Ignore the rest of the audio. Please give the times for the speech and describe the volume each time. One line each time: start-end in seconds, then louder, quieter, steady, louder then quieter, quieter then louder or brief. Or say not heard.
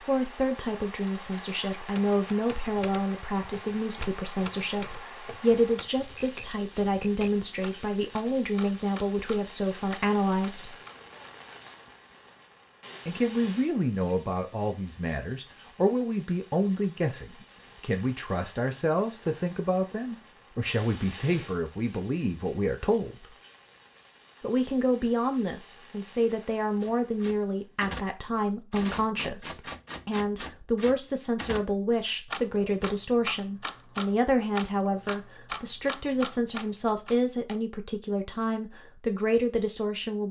0.0-10.8 steady
13.1-23.3 steady
24.4-40.2 steady.